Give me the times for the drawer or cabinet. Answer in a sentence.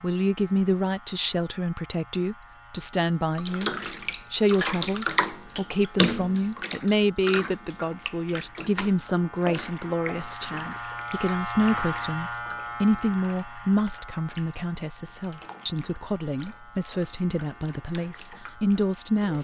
The drawer or cabinet can't be heard in this clip.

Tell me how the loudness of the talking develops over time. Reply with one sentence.
The loudness of the talking stays about the same.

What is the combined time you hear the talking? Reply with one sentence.
The talking can be heard for 19 seconds in total.